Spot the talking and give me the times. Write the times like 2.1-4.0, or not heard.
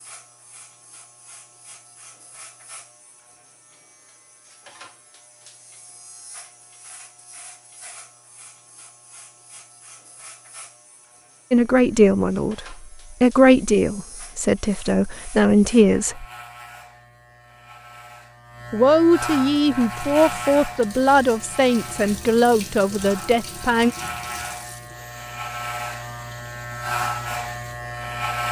11.5-16.2, 18.7-23.9.